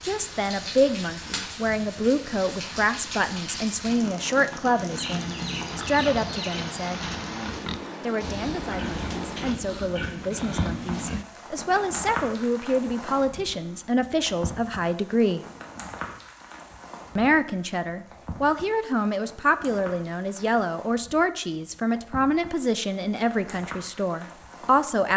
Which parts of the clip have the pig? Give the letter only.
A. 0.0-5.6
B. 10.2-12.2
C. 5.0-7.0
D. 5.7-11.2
D.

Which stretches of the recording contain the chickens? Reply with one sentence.
The chickens can be heard from 5.0 to 7.0 s.